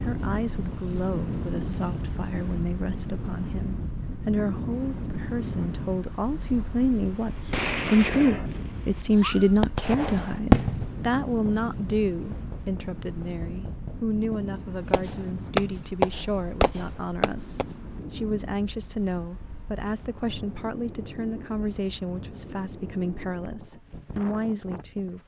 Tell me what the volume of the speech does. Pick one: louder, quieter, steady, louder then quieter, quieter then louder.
louder then quieter.